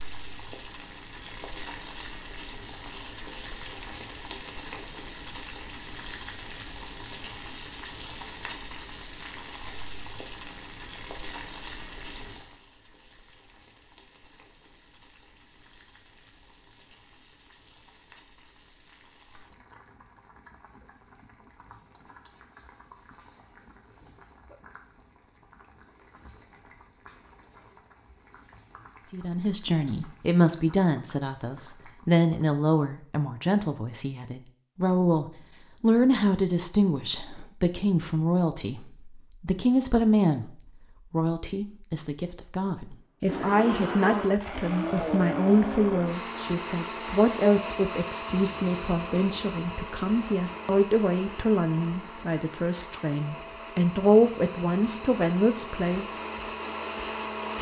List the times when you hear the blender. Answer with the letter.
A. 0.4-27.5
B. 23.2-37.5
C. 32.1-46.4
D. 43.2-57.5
D.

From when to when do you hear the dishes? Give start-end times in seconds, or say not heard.
not heard.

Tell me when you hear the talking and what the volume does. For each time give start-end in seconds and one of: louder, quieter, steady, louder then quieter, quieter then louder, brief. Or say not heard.
29.1-56.2 steady.